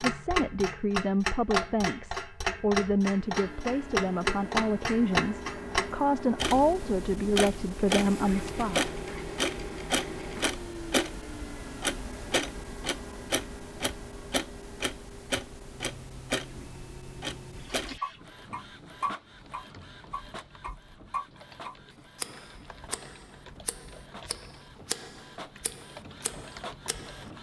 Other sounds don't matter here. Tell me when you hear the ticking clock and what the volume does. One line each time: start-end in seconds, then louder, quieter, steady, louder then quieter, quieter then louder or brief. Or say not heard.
0.0-27.3 quieter.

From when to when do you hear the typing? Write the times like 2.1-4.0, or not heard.
19.2-27.3.